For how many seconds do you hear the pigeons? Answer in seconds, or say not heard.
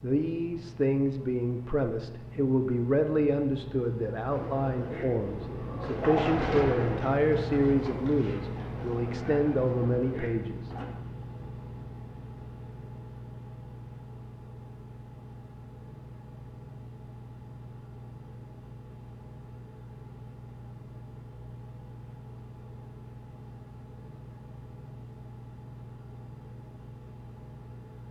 7 s.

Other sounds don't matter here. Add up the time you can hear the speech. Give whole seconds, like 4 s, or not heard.
11 s.